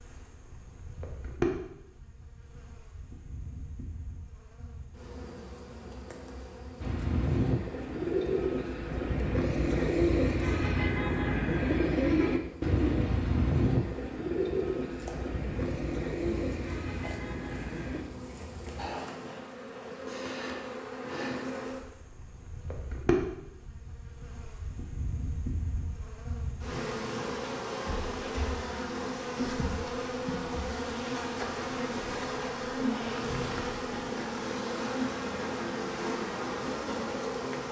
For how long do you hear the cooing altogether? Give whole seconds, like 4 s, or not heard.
11 s.